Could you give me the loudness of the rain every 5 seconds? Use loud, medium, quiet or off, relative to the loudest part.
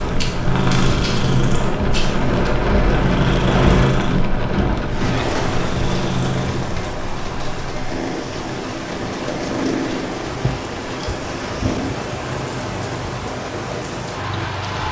loud, medium, medium.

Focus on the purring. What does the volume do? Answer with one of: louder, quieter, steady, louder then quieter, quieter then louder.
quieter.